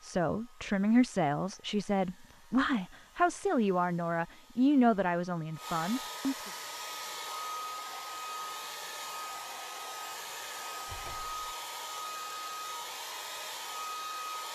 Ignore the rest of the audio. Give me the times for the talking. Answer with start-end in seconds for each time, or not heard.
0.0-6.5.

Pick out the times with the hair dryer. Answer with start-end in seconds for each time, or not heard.
0.0-14.5.